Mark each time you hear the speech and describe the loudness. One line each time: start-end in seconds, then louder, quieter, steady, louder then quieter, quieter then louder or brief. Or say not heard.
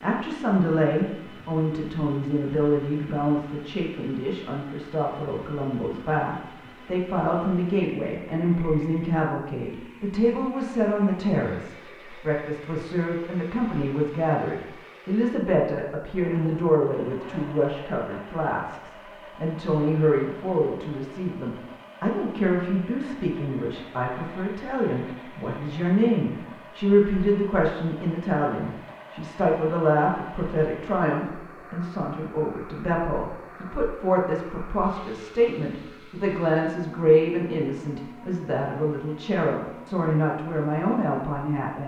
0.0-41.8 steady.